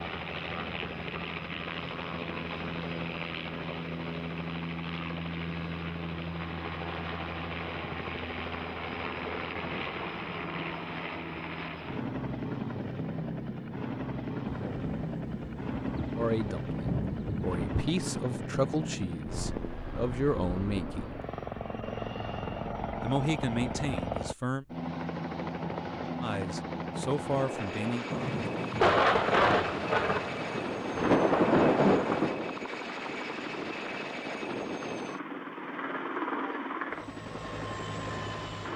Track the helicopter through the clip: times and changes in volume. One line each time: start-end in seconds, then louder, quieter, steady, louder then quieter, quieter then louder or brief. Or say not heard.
0.0-38.7 steady.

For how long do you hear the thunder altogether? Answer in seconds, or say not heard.
8 s.